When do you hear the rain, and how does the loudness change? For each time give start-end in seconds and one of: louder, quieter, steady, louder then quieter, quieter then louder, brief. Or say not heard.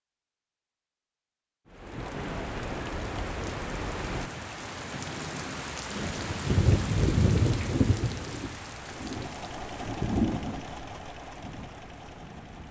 1.7-12.6 louder then quieter.